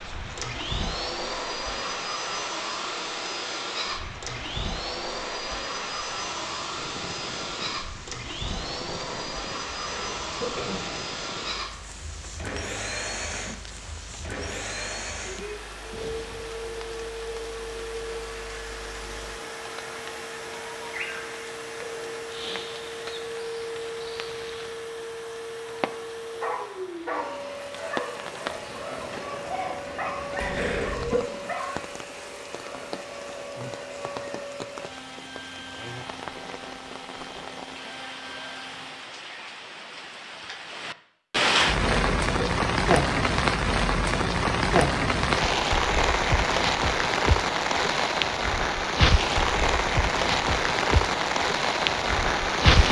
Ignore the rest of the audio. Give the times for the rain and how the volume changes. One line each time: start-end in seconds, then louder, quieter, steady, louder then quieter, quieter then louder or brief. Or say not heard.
0.0-52.8 louder.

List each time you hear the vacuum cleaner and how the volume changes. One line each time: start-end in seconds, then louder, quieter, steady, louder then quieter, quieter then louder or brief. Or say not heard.
0.0-39.1 quieter.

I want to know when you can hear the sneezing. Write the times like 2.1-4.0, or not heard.
9.7-11.1, 30.4-31.2, 41.9-42.3.